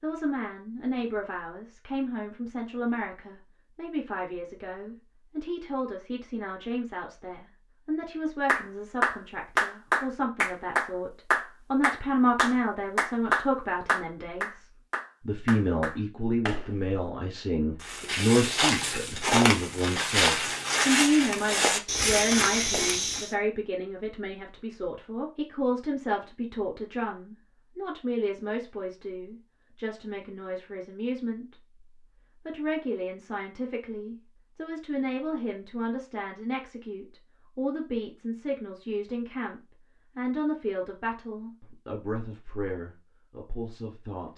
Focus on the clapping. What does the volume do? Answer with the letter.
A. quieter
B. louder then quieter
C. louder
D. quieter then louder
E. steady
A.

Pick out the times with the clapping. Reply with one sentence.
You can hear the clapping from 8.4 to 16.9 s.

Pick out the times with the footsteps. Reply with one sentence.
You can hear the footsteps from 17.8 to 23.4 s.